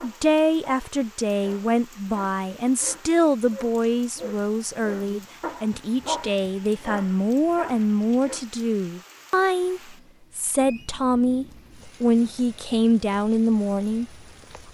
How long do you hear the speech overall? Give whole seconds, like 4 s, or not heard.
14 s.